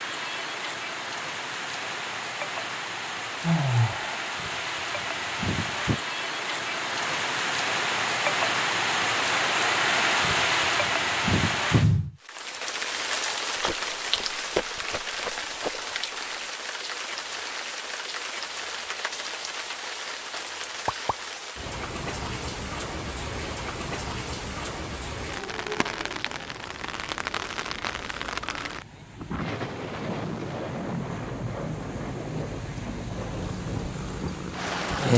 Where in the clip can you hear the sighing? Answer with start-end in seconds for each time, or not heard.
3.4-4.2.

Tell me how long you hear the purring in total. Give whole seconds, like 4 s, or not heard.
2 s.